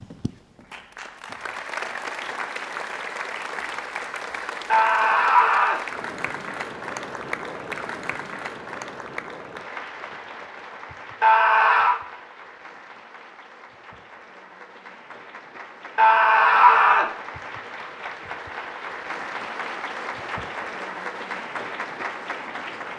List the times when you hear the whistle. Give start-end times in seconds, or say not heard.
not heard.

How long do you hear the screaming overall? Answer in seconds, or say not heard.
3 s.